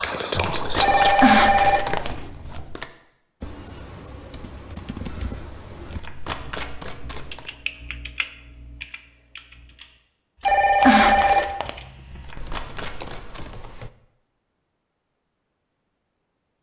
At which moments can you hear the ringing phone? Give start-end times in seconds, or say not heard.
0.8-2.1, 10.4-11.7.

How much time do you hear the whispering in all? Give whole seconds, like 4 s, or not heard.
2 s.